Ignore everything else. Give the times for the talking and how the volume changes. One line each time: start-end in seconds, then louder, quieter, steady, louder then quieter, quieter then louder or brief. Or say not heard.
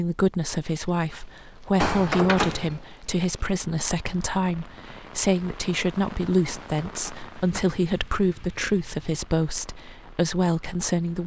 0.0-11.2 steady.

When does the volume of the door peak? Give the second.
2 s.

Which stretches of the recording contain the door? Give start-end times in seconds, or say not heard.
1.8-2.8, 6.5-7.7.